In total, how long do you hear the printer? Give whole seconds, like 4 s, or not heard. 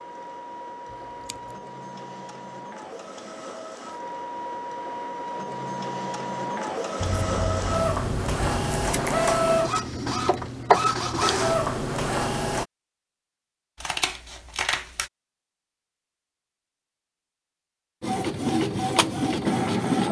15 s.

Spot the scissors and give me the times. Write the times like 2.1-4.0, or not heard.
0.9-1.6, 7.0-9.0, 13.8-15.1.